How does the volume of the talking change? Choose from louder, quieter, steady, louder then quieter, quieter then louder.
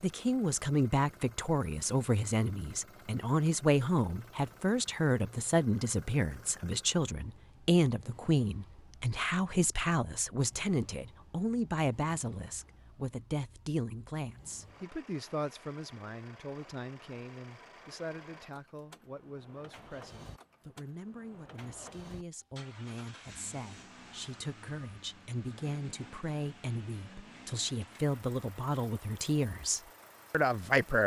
quieter then louder.